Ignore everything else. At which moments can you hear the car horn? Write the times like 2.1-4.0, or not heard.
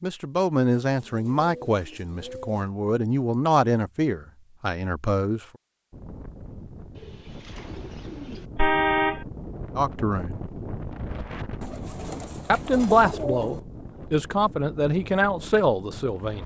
8.6-9.2.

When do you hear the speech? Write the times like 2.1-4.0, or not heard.
0.0-5.5, 9.8-10.4, 12.4-16.4.